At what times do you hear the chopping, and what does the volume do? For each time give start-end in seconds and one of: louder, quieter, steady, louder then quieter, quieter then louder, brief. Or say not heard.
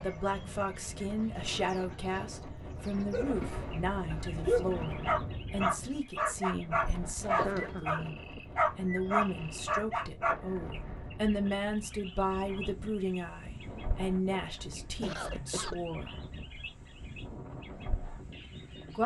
not heard.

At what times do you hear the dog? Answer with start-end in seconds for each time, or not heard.
3.1-10.3.